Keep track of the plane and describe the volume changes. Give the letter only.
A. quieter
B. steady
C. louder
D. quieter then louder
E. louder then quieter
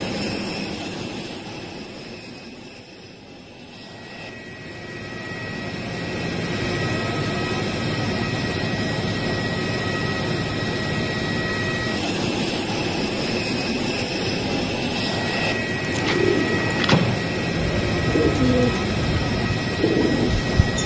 C.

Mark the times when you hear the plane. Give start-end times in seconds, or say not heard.
0.0-20.8.